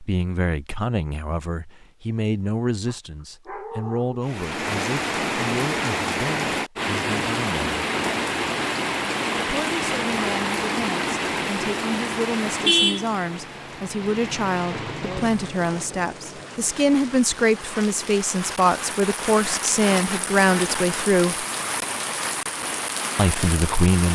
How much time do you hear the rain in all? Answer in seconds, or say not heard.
20 s.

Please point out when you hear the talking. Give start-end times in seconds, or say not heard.
0.0-7.8, 9.4-21.4, 23.1-24.1.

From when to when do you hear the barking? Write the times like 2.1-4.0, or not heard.
2.9-4.2.